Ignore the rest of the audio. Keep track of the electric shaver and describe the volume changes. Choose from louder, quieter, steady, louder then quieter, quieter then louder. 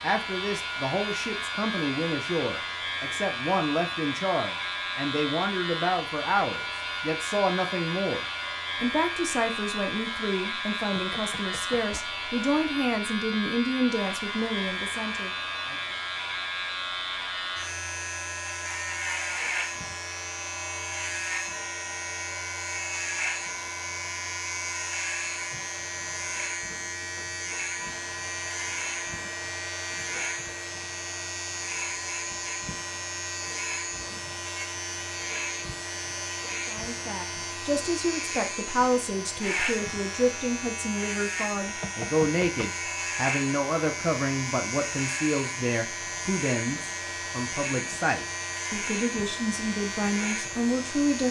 steady.